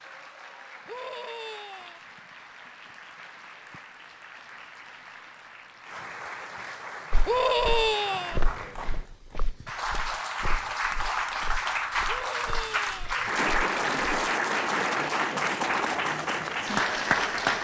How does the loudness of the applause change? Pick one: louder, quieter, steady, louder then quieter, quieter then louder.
louder.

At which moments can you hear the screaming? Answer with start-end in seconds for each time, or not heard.
0.8-2.0, 7.2-8.4, 12.1-13.2.